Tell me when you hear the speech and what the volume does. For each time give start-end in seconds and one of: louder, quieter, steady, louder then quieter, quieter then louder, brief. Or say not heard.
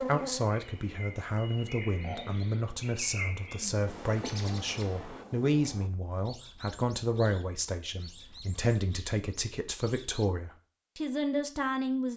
0.1-12.1 steady.